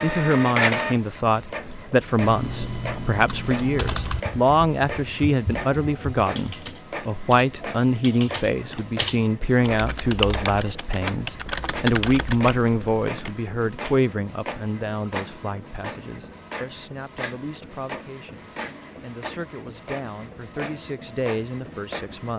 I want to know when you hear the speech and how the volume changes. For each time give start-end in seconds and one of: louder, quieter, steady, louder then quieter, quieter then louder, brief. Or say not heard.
0.0-22.3 quieter.